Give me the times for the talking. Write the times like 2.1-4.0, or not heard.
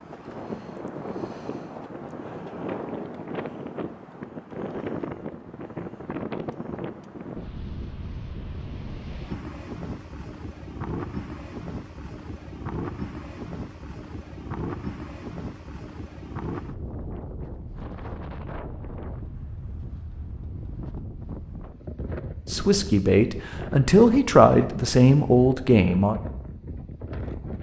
22.5-26.1.